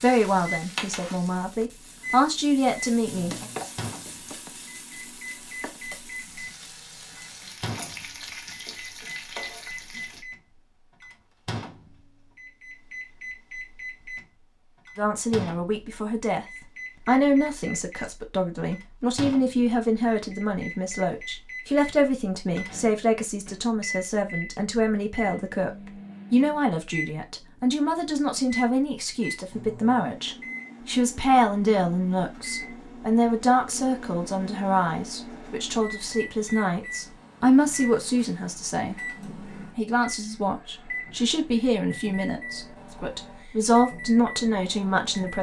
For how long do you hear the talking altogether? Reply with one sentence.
You can hear the talking for 34 seconds altogether.